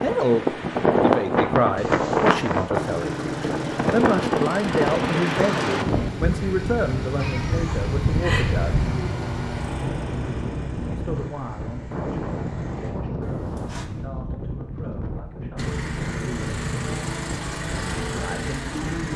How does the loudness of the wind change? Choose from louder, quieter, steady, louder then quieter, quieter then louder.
quieter.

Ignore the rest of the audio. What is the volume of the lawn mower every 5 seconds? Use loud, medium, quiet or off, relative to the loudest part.
loud, loud, medium, loud.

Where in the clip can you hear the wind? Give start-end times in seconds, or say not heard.
0.0-19.1.